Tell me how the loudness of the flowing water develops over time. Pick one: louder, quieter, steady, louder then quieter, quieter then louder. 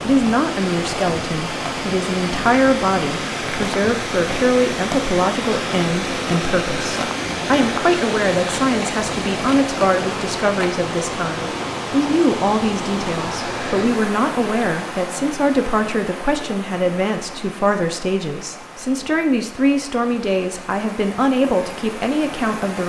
quieter.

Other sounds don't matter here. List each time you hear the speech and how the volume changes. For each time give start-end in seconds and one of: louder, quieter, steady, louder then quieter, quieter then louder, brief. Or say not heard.
0.0-22.8 steady.